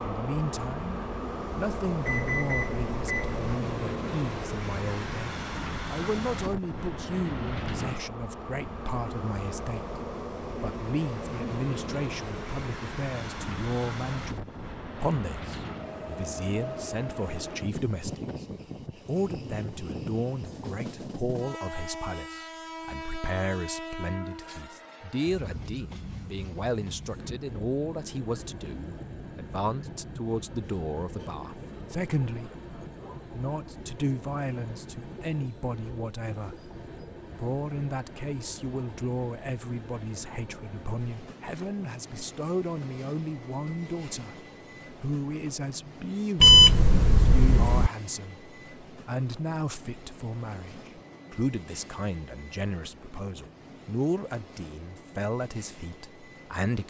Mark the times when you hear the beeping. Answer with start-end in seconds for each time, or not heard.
2.0-3.4, 46.4-47.9.